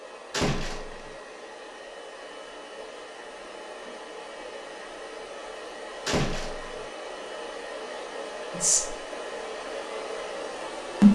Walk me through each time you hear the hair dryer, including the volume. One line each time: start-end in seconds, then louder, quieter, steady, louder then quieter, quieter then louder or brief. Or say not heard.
0.0-11.0 louder.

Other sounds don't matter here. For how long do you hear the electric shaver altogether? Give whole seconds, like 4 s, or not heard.
not heard.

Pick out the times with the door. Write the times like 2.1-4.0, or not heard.
0.3-1.1, 6.0-6.8.